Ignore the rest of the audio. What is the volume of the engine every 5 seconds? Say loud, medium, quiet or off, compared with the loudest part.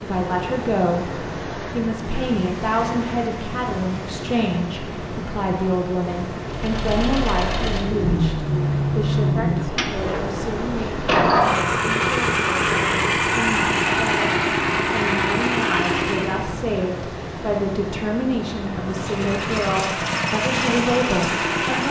off, loud, loud, loud, loud.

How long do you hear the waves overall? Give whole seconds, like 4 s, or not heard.
22 s.